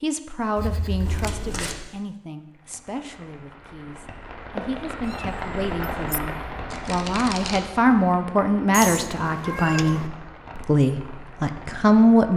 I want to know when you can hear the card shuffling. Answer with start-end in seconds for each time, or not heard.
1.1-1.8, 6.7-7.7.